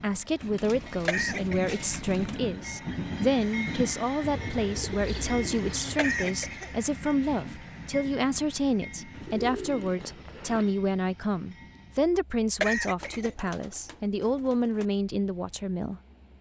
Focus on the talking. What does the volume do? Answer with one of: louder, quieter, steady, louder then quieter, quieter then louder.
steady.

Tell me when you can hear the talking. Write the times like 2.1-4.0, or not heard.
0.0-16.0.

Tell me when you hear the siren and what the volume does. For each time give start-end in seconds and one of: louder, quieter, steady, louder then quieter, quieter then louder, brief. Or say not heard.
not heard.